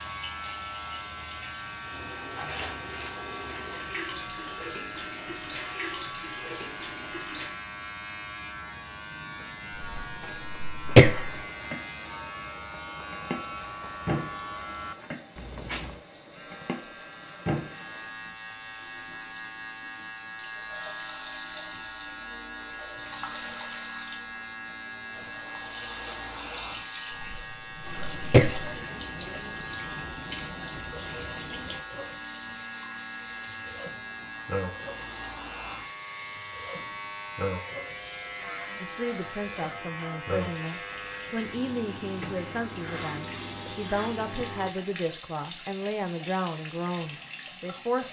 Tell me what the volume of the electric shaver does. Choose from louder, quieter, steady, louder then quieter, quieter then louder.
steady.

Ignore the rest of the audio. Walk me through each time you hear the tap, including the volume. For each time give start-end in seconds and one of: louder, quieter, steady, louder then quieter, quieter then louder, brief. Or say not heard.
0.0-48.0 steady.